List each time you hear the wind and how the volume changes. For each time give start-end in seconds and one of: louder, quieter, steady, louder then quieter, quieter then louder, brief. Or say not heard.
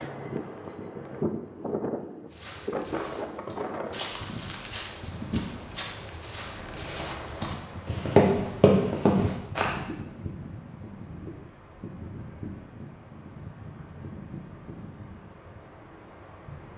0.0-16.7 quieter.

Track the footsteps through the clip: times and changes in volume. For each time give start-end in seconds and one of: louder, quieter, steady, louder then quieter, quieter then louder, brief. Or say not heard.
2.3-9.8 louder.